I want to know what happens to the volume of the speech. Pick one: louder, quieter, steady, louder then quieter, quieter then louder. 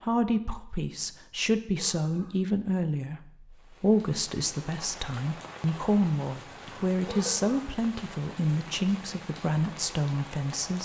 steady.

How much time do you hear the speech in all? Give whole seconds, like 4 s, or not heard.
11 s.